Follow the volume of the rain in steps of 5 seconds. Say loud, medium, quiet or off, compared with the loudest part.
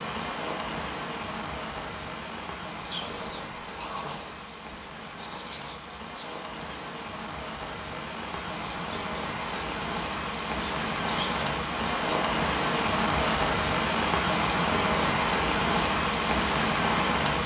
medium, medium, loud, loud.